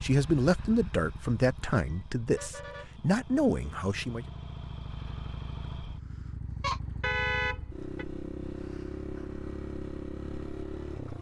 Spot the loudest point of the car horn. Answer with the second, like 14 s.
7 s.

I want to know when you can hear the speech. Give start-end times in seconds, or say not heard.
0.0-4.2.